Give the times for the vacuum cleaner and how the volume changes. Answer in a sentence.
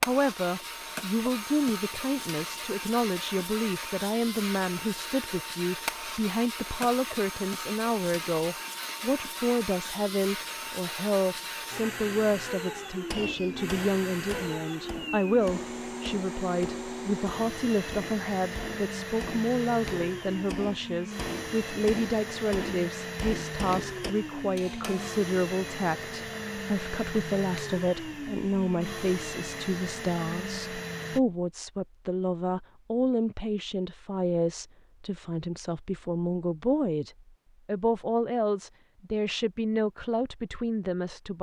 The vacuum cleaner can be heard from 0.0 to 31.2 s, at a steady volume.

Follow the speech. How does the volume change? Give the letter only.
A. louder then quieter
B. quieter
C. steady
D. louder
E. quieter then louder
C.